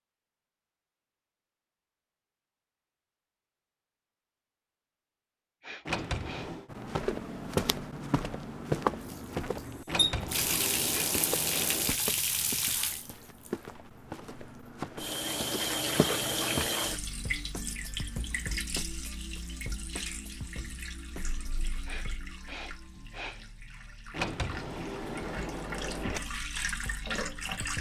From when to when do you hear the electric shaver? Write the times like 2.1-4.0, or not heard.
not heard.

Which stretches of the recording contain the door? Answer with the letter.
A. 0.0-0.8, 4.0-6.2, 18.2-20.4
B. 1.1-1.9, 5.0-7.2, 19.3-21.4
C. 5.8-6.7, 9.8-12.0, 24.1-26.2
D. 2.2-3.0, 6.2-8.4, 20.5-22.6
C.